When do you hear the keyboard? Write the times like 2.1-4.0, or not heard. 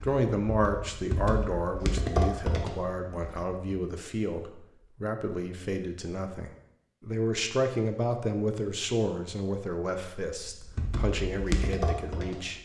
0.0-3.5, 10.3-12.6.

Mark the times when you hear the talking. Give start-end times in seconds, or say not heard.
0.0-12.6.